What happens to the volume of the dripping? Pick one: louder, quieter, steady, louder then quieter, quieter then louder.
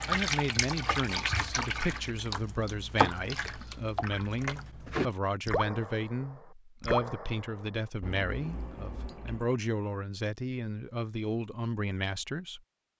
quieter.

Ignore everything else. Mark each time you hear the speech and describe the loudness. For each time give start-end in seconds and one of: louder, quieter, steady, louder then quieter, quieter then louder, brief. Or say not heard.
0.1-12.6 steady.